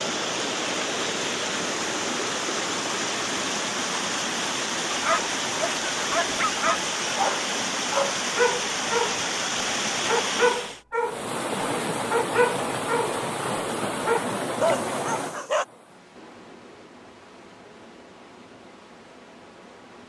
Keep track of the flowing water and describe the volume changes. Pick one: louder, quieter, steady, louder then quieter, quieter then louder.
quieter.